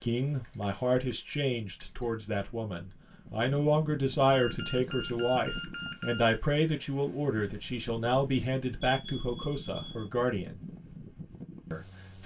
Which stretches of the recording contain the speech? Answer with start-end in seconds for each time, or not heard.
0.0-10.6, 11.7-12.2.